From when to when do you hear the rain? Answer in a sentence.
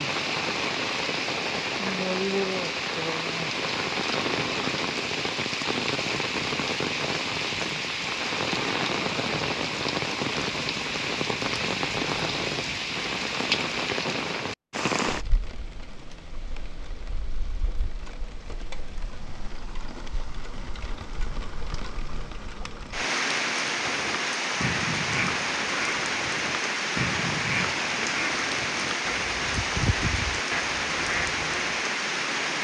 The rain can be heard from 0.0 to 32.5 s.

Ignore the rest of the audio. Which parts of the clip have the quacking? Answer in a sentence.
You can hear the quacking from 23.8 to 31.9 s.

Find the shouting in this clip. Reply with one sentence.
You can't hear the shouting here.